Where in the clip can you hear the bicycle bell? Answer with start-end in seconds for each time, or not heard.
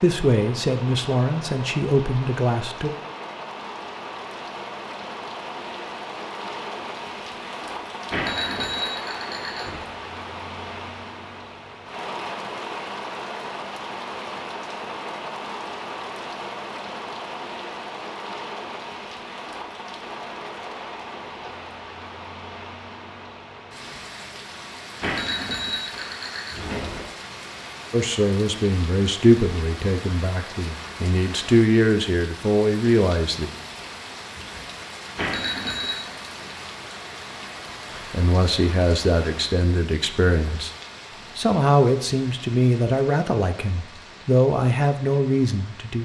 8.1-9.8, 25.0-27.1, 35.1-36.1.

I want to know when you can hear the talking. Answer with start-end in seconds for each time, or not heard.
0.0-2.9, 27.9-33.5, 38.0-40.7, 41.4-45.9.